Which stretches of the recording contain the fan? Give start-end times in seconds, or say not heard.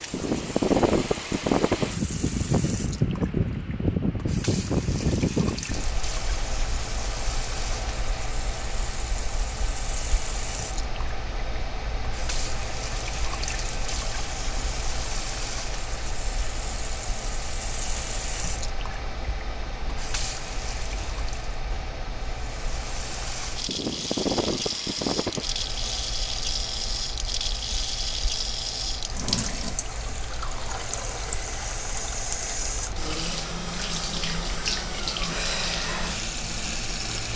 0.0-37.3.